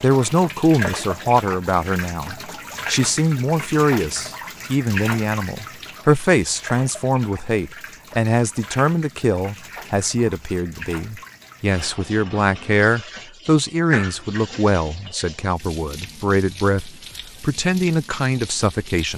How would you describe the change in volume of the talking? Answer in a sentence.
The volume of the talking stays about the same.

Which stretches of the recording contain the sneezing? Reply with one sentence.
The sneezing can be heard from 13.9 to 14.8 s.